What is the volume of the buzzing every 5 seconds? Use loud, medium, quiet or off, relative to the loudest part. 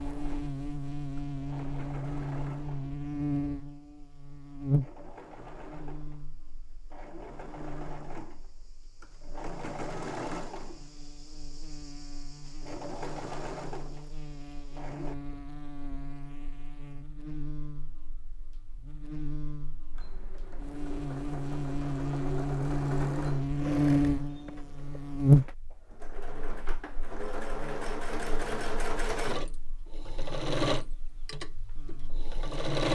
medium, quiet, quiet, quiet, loud, loud, quiet.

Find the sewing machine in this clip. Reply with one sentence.
The sewing machine can be heard from 0.0 to 15.2 s and from 19.9 to 32.9 s.